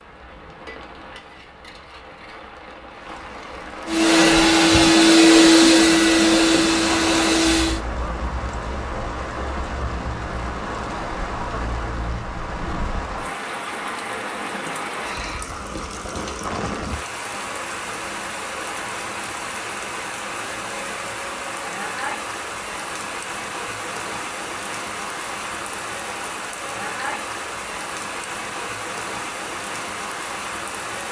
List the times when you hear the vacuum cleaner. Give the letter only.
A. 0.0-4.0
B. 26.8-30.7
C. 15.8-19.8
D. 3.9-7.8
D.